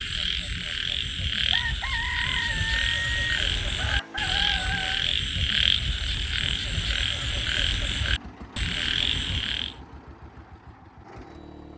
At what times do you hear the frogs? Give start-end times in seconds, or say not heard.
0.0-9.8.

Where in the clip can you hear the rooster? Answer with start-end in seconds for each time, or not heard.
1.5-5.0.